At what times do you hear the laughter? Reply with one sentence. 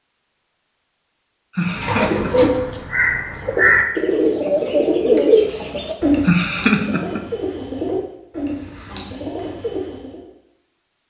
You can hear the laughter from 1.6 to 2.7 s and from 6.2 to 7.2 s.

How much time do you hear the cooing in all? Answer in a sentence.
The cooing can be heard for 9 seconds in total.